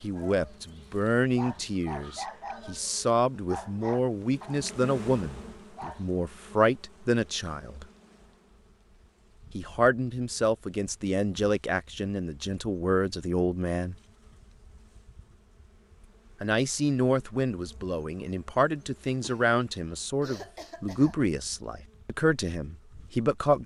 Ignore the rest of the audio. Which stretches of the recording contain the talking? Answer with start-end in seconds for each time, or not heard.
0.0-7.8, 9.6-13.9, 16.4-23.6.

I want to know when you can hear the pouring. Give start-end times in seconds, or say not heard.
not heard.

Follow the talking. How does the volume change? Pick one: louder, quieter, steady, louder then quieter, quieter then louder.
steady.